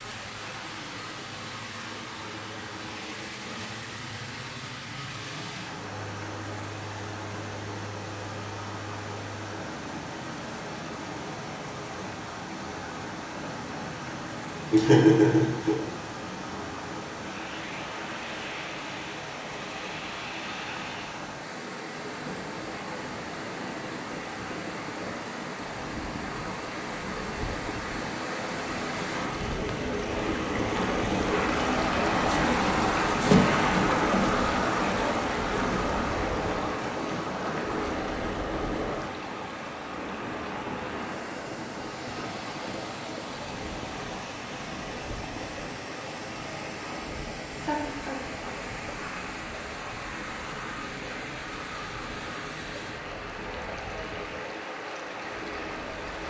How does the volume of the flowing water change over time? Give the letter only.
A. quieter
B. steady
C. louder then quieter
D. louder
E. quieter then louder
C.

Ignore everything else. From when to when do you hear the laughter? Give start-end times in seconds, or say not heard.
14.7-15.8, 47.6-48.2.